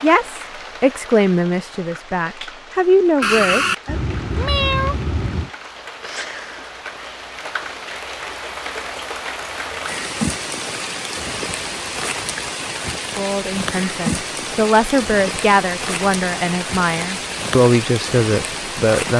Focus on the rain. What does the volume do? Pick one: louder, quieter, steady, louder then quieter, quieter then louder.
louder.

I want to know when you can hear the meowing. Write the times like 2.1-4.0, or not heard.
3.2-5.5.